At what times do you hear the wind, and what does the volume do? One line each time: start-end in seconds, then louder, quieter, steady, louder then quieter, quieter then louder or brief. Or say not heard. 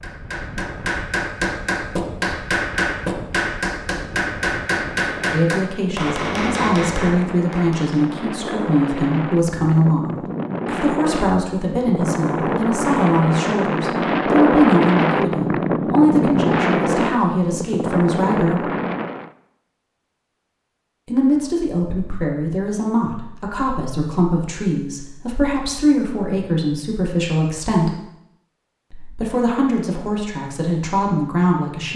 0.0-19.3 louder.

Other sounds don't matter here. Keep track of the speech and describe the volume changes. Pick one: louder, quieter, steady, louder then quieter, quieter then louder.
steady.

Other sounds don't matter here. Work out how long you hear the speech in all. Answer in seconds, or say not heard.
23 s.